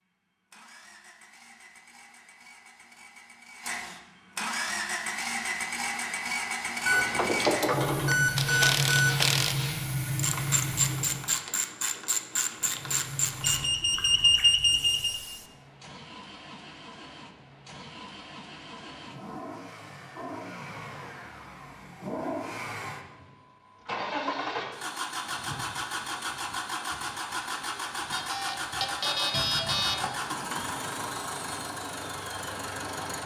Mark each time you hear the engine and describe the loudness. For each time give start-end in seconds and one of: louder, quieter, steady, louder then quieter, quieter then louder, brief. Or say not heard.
0.0-11.3 louder
12.5-33.2 louder.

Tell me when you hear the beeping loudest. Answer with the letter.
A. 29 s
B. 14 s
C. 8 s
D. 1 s
B.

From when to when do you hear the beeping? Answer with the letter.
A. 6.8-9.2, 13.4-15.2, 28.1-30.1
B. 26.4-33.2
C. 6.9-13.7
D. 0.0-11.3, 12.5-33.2
A.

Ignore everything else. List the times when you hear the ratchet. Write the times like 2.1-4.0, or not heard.
6.9-13.7.